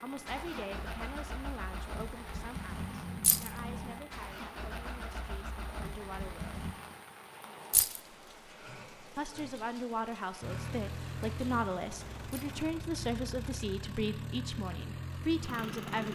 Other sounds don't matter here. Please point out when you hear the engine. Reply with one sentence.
The engine can be heard from 0.0 to 6.8 s and from 10.4 to 16.1 s.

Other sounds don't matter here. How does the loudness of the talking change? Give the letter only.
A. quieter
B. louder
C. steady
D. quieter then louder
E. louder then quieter
D.